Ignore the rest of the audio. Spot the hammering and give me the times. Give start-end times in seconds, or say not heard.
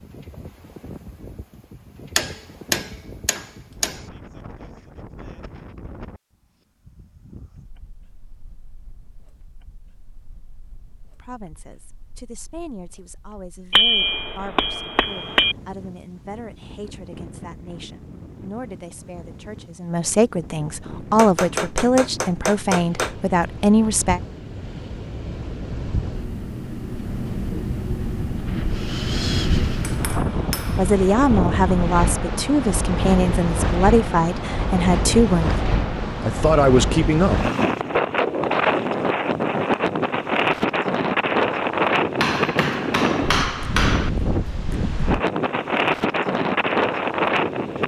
2.1-4.0, 13.7-15.6, 21.1-23.1, 29.8-30.9, 42.2-44.1.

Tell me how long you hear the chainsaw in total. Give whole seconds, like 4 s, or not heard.
not heard.